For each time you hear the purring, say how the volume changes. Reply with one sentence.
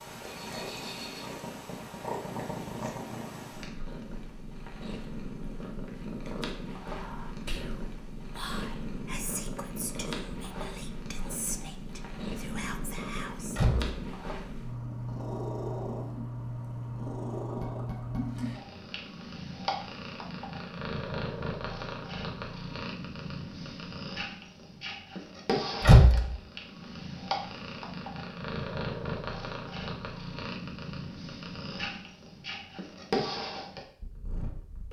The purring can be heard from 0.0 to 34.8 s, at a steady volume.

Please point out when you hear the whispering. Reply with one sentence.
The whispering can be heard from 6.9 to 13.6 s.